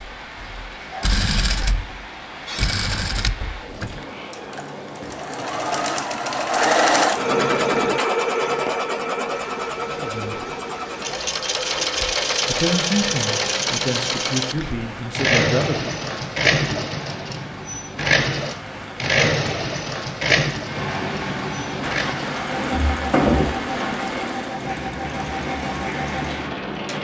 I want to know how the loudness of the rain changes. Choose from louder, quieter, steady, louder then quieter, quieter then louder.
louder.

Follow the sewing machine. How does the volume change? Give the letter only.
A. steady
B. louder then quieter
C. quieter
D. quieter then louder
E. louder
B.